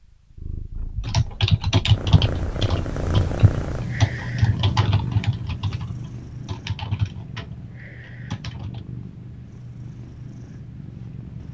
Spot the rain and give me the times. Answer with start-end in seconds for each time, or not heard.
not heard.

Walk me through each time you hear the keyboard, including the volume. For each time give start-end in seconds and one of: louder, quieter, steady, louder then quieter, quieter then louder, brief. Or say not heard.
1.1-8.8 quieter.